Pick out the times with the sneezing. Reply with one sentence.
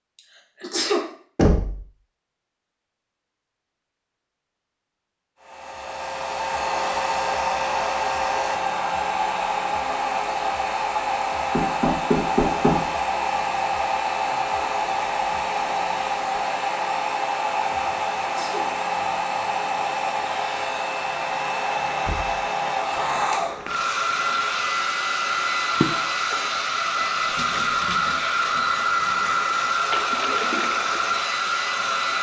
You can hear the sneezing from 0.6 to 1.1 s and from 18.2 to 18.7 s.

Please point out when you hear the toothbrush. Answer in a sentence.
You can't hear the toothbrush here.